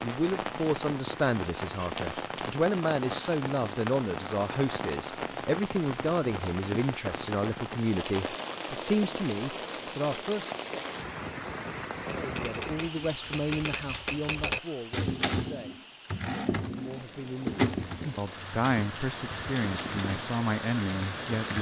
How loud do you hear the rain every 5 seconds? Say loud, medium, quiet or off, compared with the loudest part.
loud, loud, loud, medium, loud.